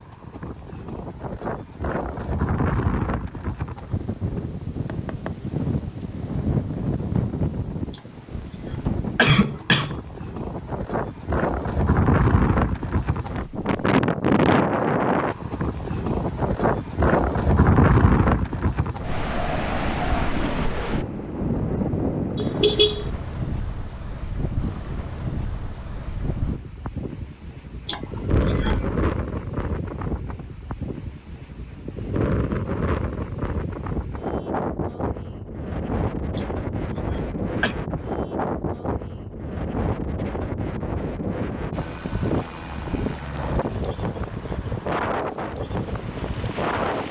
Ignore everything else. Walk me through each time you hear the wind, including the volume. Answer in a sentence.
You can hear the wind from 0.0 to 47.0 s, getting louder then quieter.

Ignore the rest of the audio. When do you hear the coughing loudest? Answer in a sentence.
The volume of the coughing peaks at 9 seconds.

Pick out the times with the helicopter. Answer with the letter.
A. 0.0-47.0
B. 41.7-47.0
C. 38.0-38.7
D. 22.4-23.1
B.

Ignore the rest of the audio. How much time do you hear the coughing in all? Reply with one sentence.
The coughing can be heard for 5 seconds in total.